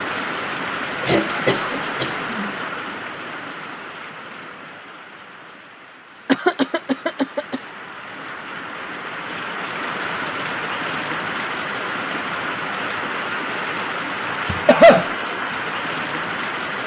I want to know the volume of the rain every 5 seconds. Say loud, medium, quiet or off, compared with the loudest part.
loud, medium, loud, loud.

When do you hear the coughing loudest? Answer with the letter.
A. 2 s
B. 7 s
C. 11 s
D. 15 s
D.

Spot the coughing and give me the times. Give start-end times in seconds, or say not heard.
1.0-2.5, 6.2-7.6, 14.4-15.1.